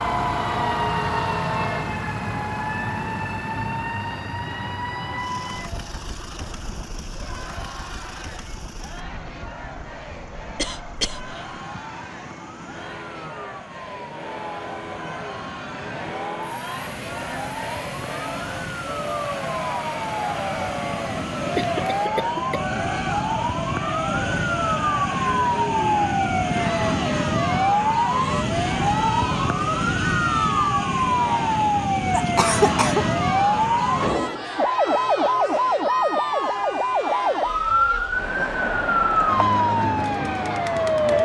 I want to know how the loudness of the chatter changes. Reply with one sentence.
The loudness of the chatter goes up.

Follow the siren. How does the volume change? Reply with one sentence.
The volume of the siren goes down, then up.